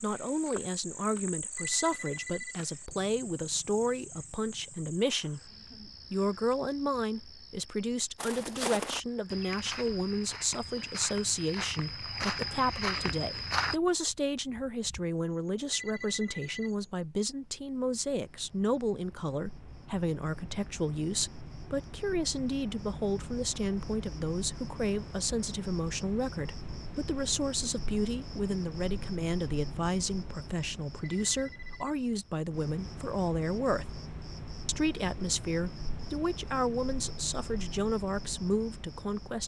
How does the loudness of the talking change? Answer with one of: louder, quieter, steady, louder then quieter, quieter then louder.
steady.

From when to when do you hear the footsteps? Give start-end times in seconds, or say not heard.
8.2-13.8.